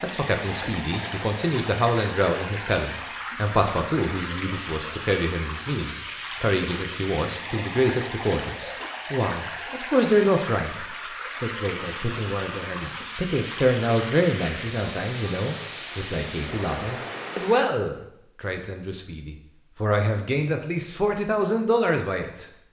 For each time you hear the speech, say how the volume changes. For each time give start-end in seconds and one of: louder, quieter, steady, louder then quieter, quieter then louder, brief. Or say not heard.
0.0-22.4 steady.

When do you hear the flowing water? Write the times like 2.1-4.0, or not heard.
0.0-17.7.